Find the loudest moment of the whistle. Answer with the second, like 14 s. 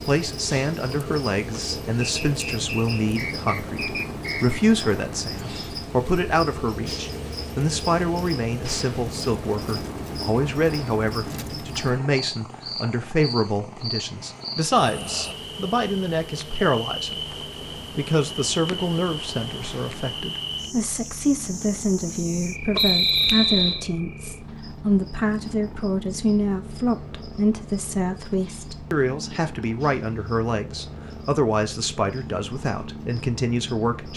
23 s.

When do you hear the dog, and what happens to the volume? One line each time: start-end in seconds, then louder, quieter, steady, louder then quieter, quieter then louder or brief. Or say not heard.
not heard.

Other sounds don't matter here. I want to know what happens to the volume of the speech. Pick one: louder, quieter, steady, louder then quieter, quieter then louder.
steady.